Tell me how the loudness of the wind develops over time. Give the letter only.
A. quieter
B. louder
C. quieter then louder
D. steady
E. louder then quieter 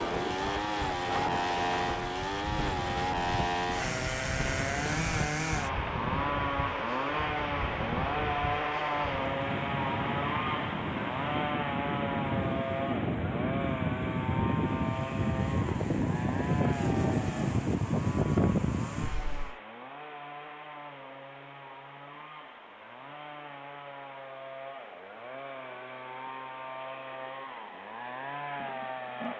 B.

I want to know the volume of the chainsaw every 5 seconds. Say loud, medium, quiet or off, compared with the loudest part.
loud, loud, loud, medium, quiet, medium.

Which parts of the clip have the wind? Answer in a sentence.
You can hear the wind from 0.0 to 19.6 s.